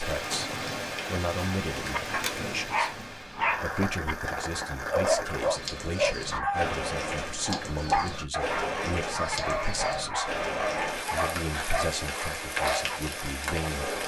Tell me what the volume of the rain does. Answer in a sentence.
The loudness of the rain stays about the same.